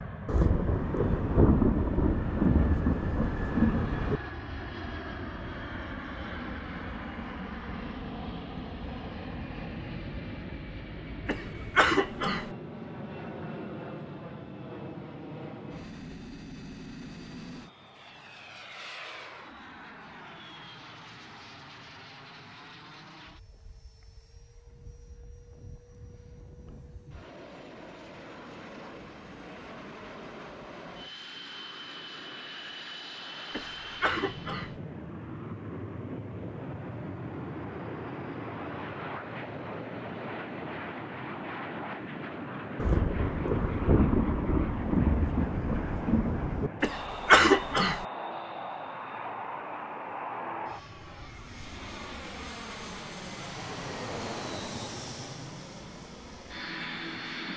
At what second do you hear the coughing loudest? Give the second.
47 s.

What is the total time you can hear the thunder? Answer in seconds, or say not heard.
8 s.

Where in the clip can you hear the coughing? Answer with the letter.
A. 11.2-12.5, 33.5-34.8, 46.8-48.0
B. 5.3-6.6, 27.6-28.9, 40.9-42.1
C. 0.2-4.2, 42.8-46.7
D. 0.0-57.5
A.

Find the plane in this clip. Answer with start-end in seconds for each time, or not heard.
0.0-57.5.